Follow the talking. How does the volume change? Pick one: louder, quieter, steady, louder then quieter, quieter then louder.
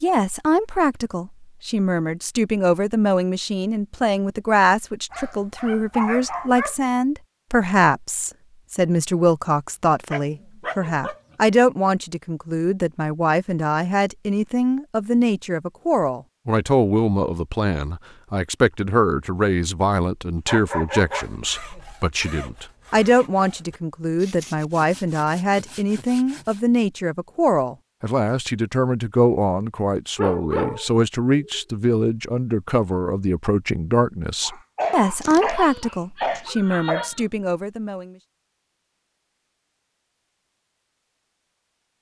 steady.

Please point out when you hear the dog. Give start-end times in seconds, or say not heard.
5.1-6.8, 10.1-11.2, 20.4-21.8, 30.1-31.6, 34.4-37.2.